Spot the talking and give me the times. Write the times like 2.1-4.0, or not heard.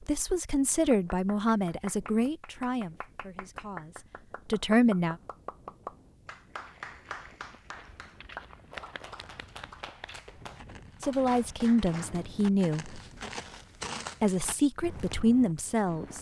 0.0-5.2, 11.0-13.0, 14.2-16.1.